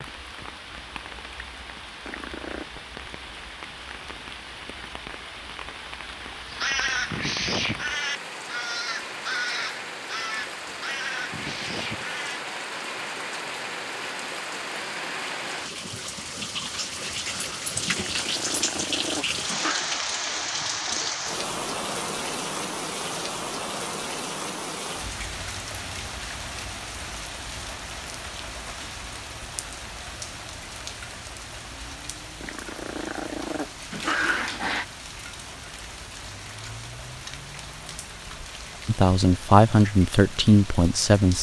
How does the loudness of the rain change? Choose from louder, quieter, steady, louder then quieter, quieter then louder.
louder then quieter.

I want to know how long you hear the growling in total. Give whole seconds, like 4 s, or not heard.
5 s.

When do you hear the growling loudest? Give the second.
34 s.